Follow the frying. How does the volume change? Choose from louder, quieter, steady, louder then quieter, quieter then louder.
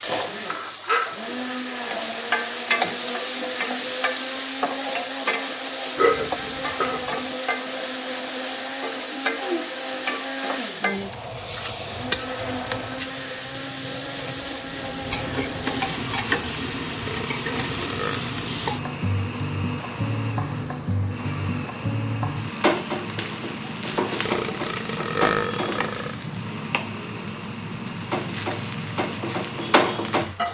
steady.